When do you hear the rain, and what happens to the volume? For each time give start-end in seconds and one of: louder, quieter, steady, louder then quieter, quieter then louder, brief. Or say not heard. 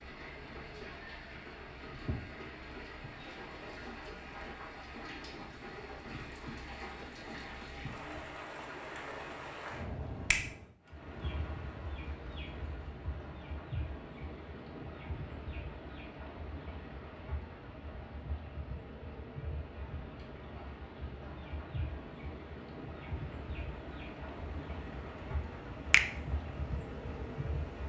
0.0-27.8 steady.